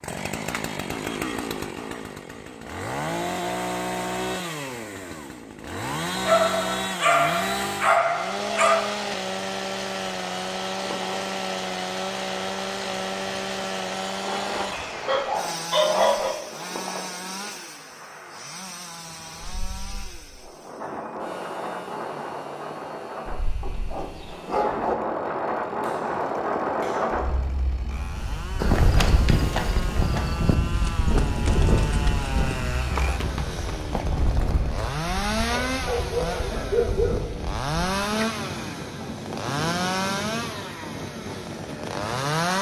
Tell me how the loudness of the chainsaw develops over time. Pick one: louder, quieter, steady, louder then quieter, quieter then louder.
quieter then louder.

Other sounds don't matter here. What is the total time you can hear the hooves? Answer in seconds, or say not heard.
7 s.